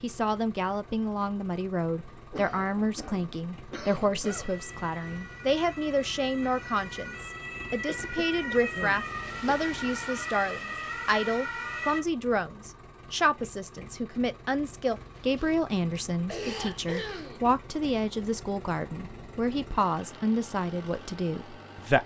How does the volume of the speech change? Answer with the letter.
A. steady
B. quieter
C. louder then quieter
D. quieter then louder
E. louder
A.